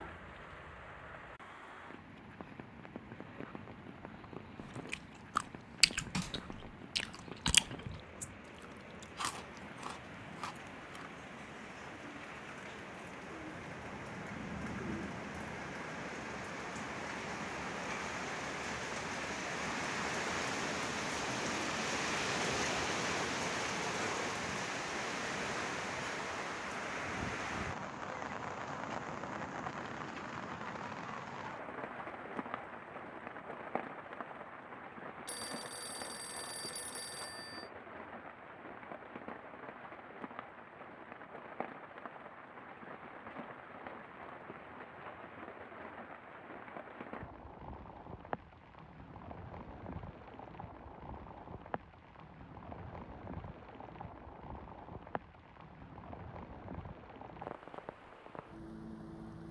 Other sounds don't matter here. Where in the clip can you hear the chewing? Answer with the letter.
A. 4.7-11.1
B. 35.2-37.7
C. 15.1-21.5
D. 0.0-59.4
A.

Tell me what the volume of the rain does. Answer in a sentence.
The loudness of the rain goes up, then down.